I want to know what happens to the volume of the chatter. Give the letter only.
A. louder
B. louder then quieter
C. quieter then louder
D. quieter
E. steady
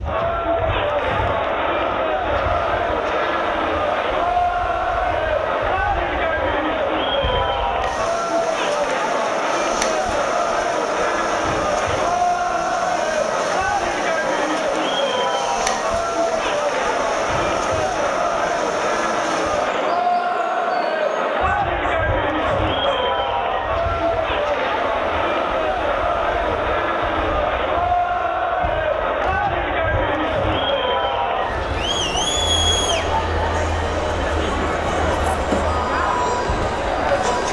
E.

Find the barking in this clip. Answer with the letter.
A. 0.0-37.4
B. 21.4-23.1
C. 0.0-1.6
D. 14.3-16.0
B.